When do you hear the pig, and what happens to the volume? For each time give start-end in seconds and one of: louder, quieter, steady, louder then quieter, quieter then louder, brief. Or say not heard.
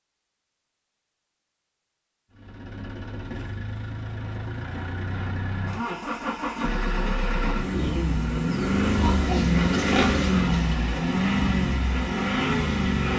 6.5-11.0 louder.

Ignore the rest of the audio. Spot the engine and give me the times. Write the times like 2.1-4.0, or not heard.
2.4-13.1.